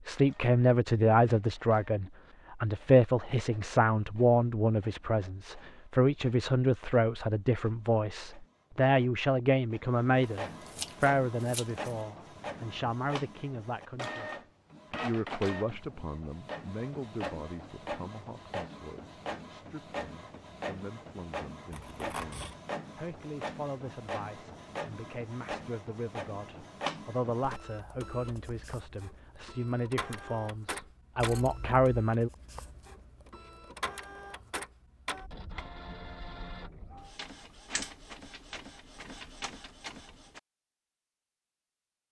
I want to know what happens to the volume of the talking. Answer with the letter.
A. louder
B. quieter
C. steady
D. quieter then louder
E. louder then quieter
D.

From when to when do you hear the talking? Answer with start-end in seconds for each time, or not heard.
0.1-32.3.